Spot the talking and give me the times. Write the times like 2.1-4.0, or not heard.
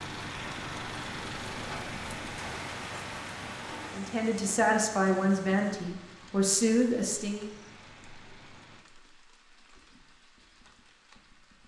3.9-7.5.